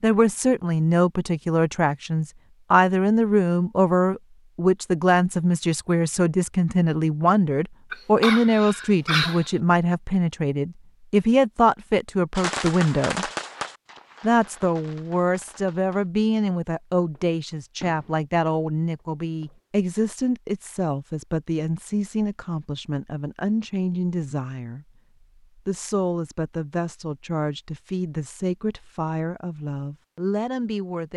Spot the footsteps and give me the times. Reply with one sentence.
The footsteps can't be heard in this clip.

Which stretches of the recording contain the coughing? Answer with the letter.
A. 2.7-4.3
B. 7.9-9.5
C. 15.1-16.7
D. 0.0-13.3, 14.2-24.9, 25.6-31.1
B.